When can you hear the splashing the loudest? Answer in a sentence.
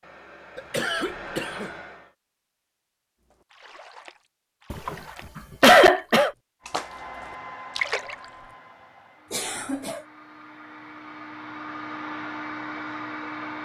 The loudest moment of the splashing is at 8 seconds.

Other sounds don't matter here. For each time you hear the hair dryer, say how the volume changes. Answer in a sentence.
The hair dryer can be heard briefly from 0.0 to 2.1 s; and from 6.6 to 13.6 s, getting quieter then louder.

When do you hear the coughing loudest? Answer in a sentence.
The loudest moment of the coughing is at 6 seconds.